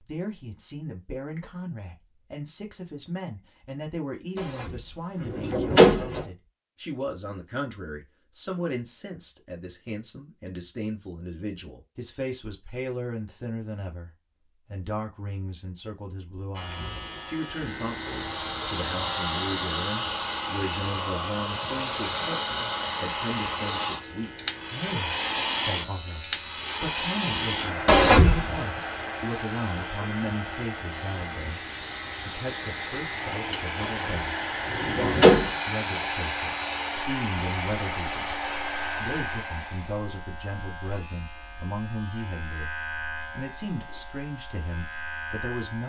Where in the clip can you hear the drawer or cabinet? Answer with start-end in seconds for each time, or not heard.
4.3-6.2, 27.9-28.6, 33.8-35.5.